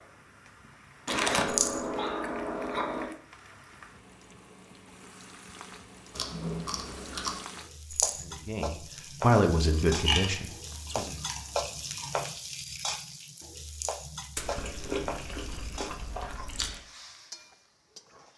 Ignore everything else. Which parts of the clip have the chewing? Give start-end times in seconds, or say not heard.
1.1-3.1, 6.1-7.4, 9.8-12.2, 14.3-16.8.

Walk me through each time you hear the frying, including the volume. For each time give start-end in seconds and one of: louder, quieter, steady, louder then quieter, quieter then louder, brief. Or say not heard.
0.0-18.3 louder then quieter.